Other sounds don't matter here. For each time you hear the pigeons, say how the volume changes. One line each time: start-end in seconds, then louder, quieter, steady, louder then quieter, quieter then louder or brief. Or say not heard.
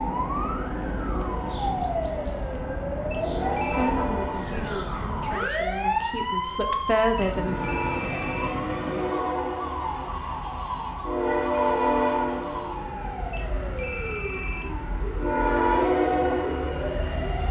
not heard.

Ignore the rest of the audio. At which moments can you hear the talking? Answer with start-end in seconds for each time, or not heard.
3.0-7.7.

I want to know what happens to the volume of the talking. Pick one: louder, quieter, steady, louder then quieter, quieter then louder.
quieter then louder.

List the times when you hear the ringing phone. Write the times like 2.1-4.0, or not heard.
3.1-3.9, 7.2-8.6, 13.3-14.8.